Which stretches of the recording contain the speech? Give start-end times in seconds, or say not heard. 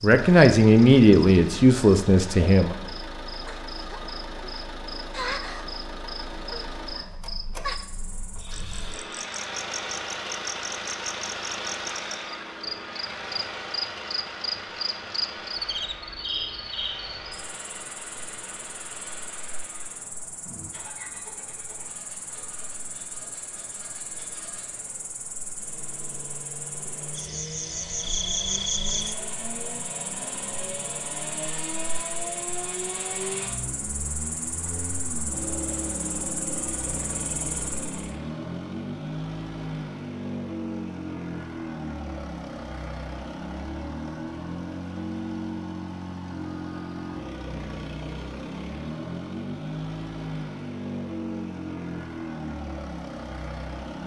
0.0-2.8.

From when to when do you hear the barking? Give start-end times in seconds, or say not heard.
not heard.